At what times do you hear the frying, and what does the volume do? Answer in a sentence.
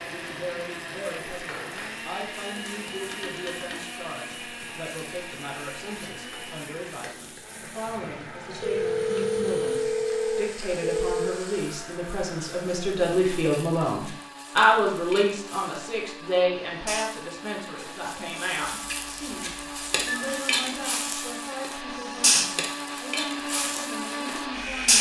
You can hear the frying from 0.0 to 24.9 s, getting louder.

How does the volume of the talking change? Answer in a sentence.
The loudness of the talking goes up, then down.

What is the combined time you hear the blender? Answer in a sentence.
The blender can be heard for 25 seconds in total.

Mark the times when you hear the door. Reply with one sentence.
The door can't be heard in this clip.